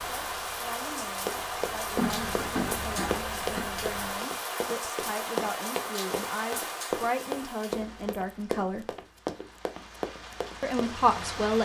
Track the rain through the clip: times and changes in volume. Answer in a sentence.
You can hear the rain from 0.0 to 11.6 s, getting quieter.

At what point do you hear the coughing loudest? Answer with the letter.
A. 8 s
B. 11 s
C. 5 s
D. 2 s
D.